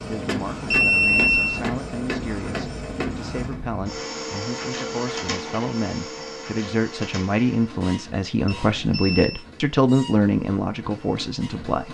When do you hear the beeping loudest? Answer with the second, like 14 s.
1 s.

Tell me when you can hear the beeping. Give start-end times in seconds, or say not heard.
0.7-1.6, 8.4-9.4.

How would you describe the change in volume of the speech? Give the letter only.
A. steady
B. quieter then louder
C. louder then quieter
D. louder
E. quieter
D.